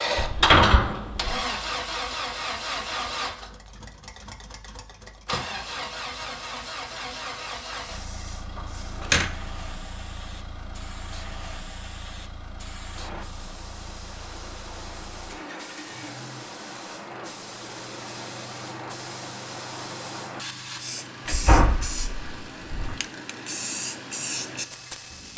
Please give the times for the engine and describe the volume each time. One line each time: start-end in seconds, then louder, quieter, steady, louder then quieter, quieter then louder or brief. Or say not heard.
0.0-25.3 quieter.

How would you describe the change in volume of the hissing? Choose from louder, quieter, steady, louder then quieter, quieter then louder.
louder.